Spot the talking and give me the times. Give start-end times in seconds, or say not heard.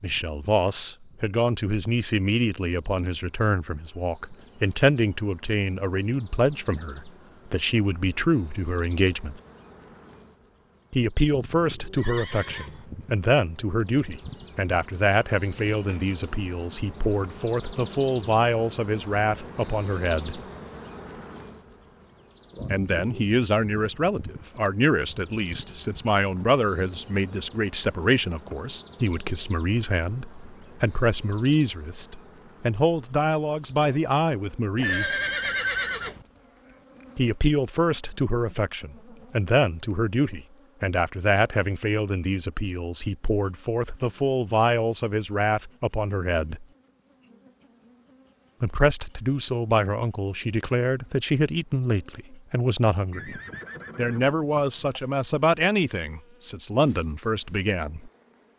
0.0-9.4, 10.9-20.4, 22.7-35.1, 37.1-46.6, 48.6-58.1.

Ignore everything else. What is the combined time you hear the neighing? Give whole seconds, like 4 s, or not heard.
4 s.